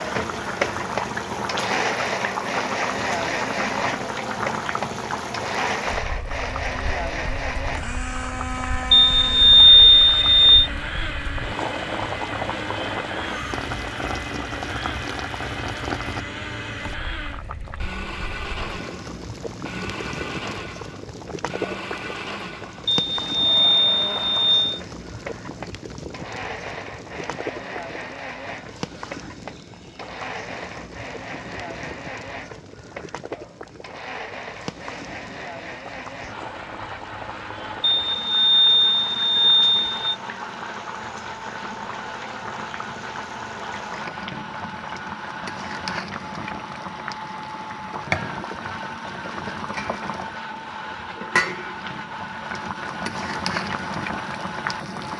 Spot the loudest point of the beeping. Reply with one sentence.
The volume of the beeping peaks at 10 seconds.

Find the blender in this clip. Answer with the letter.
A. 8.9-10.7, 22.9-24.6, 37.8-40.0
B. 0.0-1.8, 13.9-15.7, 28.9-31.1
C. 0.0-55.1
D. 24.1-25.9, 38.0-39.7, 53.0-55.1
C.